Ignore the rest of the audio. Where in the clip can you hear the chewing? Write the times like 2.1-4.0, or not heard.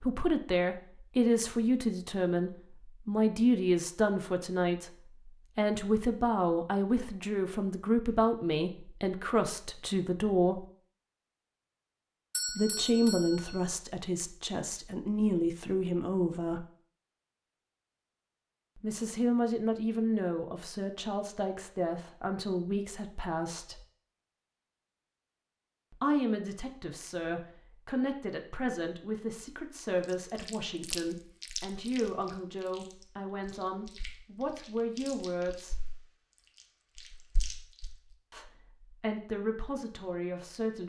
30.1-38.1.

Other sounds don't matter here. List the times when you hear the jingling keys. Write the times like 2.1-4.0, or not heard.
not heard.